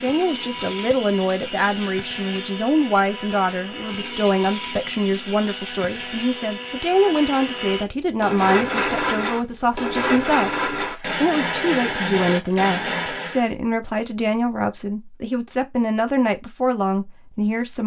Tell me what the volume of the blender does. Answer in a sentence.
The loudness of the blender goes up.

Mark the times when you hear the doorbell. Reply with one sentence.
The doorbell can't be heard in this clip.